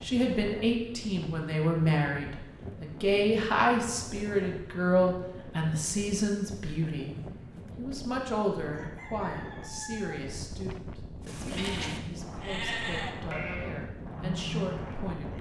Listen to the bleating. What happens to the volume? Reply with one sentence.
The loudness of the bleating goes down, then up.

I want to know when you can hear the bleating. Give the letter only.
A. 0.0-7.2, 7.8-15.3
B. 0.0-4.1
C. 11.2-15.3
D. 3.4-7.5
C.